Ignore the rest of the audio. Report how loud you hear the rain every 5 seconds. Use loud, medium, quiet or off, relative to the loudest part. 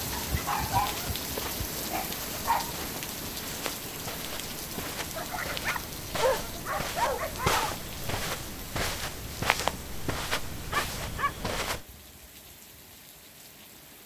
loud, medium, quiet.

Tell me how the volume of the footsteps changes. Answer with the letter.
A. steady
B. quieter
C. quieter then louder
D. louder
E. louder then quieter
D.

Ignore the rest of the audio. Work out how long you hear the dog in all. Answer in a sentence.
The dog can be heard for 7 seconds in total.